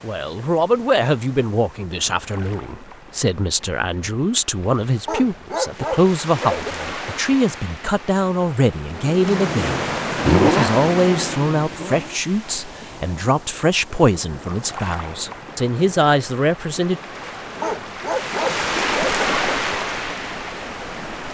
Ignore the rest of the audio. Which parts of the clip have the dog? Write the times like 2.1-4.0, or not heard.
5.0-6.8, 17.6-19.2.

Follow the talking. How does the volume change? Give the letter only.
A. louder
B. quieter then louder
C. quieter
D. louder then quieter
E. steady
E.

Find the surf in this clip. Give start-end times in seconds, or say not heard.
0.0-21.2.